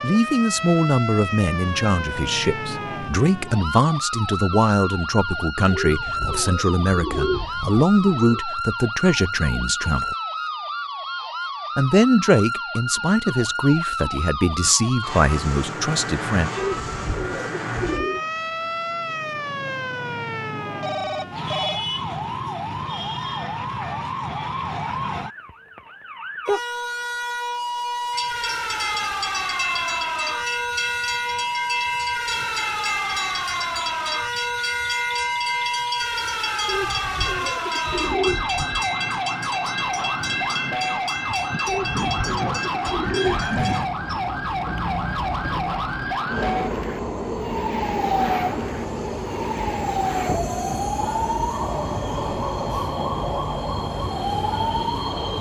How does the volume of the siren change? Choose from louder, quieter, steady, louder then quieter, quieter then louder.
steady.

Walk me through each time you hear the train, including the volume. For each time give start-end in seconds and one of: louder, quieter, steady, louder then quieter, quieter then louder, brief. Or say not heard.
28.1-55.3 steady.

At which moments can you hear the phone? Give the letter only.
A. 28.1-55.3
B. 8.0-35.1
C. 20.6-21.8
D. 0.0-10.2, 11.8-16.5
C.